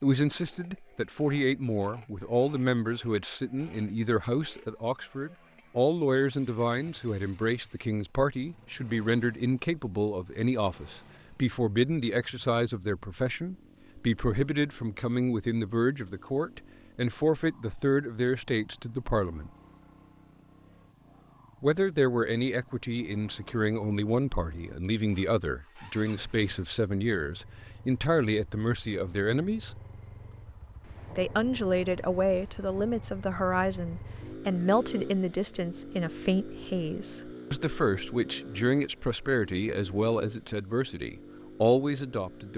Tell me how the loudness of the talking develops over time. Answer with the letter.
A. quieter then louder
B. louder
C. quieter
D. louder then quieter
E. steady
E.